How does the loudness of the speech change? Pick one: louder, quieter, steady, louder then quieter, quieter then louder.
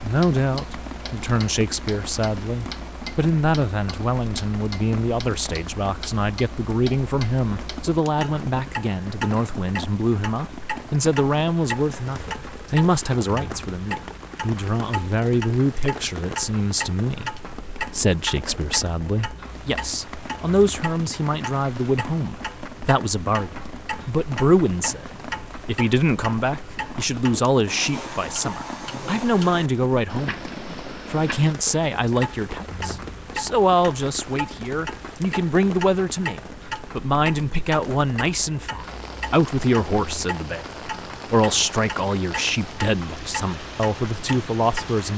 steady.